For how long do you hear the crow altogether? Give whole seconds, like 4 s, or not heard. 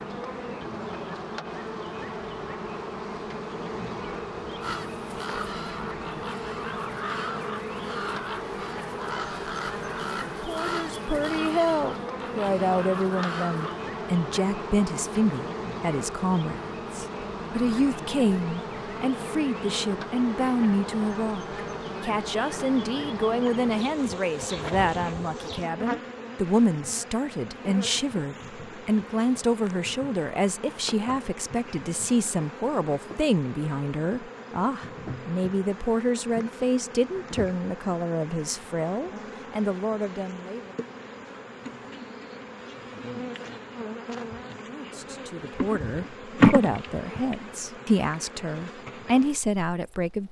9 s.